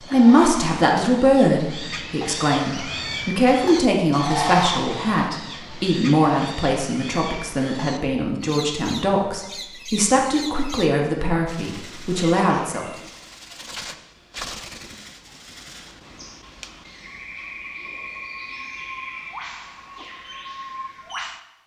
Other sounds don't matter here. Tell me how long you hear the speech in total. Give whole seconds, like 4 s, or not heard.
13 s.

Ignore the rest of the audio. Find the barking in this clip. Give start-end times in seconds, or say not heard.
not heard.